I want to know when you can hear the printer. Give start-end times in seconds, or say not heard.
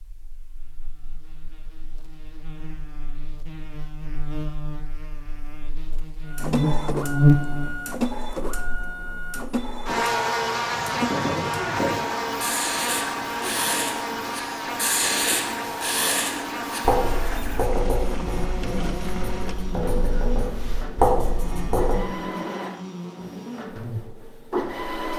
6.2-25.1.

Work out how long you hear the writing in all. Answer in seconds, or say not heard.
11 s.